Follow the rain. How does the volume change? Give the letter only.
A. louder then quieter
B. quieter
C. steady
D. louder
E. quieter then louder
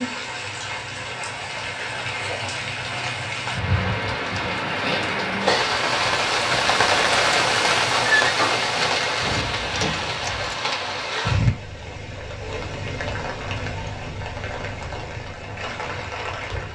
A.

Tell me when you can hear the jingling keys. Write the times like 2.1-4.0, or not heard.
9.2-10.6.